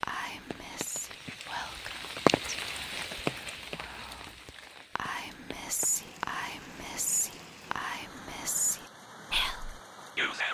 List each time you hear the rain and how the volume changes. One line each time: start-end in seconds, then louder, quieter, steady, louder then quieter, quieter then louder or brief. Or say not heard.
0.2-10.4 quieter.